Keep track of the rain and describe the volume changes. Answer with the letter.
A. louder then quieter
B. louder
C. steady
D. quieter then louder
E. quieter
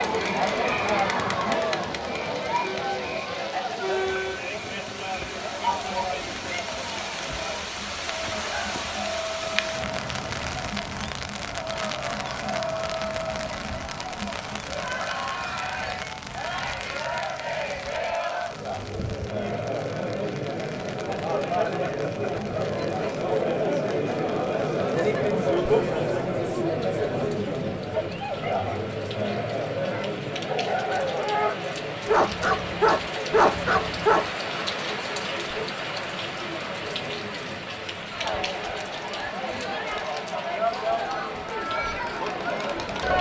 D.